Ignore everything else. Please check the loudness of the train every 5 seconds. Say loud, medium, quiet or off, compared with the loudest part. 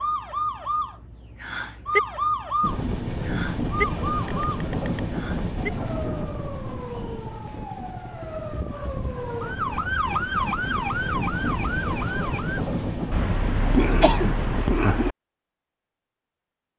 loud, medium, loud, off.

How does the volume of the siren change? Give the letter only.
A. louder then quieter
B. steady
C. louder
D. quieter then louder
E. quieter
D.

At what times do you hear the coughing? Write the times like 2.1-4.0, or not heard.
4.2-5.0, 13.1-15.2.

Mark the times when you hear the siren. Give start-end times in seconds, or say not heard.
0.0-12.7.